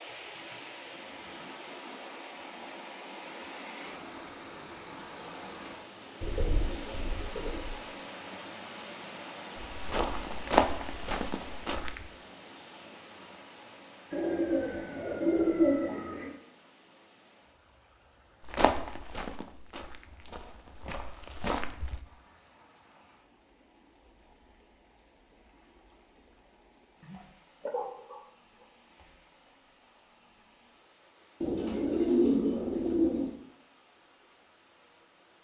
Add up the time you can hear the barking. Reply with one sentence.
You can hear the barking for 2 seconds altogether.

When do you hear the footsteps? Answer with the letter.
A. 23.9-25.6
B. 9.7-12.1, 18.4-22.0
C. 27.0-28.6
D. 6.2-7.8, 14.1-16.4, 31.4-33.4
B.